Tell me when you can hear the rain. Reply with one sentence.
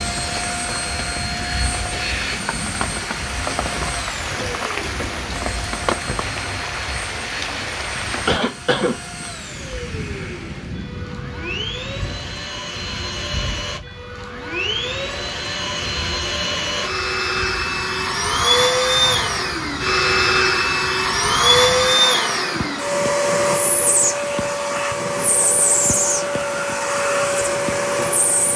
The rain can be heard from 0.0 to 28.5 s.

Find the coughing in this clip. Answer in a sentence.
You can hear the coughing from 8.0 to 9.2 s.